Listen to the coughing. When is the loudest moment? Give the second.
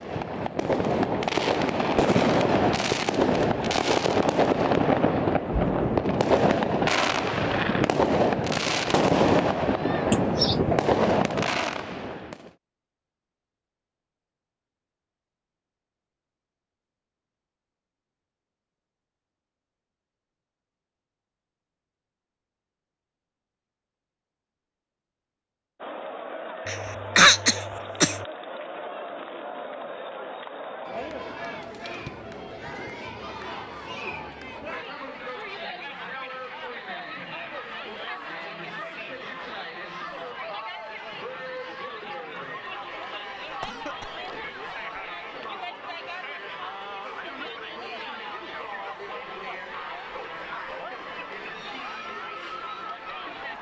27 s.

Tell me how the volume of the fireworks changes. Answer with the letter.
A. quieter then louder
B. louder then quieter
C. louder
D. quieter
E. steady
E.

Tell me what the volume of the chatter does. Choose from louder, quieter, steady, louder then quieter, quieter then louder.
steady.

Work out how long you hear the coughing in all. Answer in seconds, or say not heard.
3 s.